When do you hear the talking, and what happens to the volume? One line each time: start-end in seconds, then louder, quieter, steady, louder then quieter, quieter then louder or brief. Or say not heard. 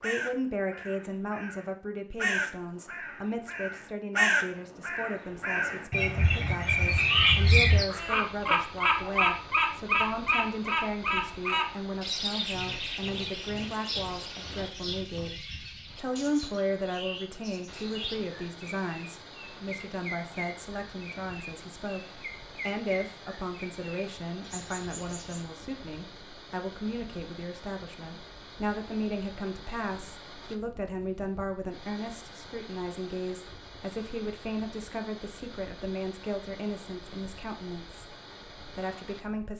0.0-15.3 steady
15.9-39.5 steady.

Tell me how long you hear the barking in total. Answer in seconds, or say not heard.
not heard.